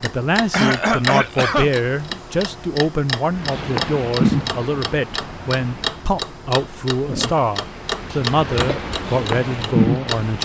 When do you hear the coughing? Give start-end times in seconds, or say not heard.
0.5-1.7, 8.1-8.8.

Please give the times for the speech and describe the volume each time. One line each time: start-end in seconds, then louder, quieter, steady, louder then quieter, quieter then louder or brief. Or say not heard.
0.0-10.4 steady.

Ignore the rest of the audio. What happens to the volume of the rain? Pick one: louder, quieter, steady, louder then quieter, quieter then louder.
quieter then louder.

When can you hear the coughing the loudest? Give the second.
1 s.